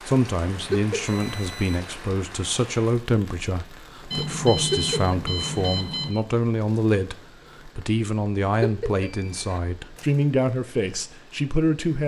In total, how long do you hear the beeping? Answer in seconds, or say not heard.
4 s.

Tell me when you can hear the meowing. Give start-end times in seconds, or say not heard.
0.7-1.1, 4.7-5.7, 8.6-9.6.